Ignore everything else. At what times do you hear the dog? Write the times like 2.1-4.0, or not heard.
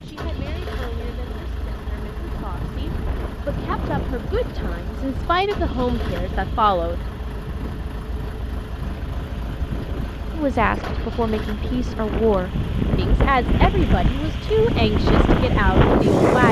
not heard.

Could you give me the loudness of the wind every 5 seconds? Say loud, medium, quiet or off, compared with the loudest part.
quiet, quiet, medium, loud.